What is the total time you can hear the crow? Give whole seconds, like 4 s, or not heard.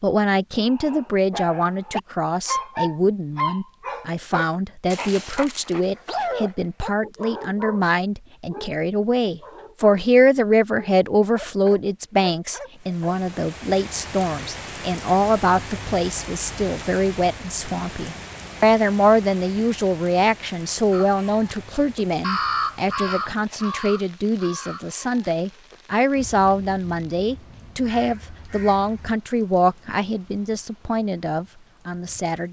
8 s.